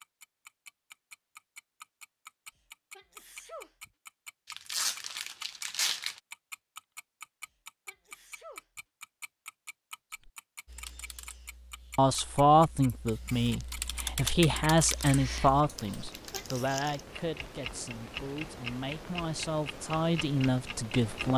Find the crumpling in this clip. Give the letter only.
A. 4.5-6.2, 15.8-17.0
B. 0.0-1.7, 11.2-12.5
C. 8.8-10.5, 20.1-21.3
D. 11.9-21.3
A.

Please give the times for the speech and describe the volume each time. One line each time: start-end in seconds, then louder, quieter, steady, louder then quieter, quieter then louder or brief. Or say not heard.
11.9-21.3 quieter then louder.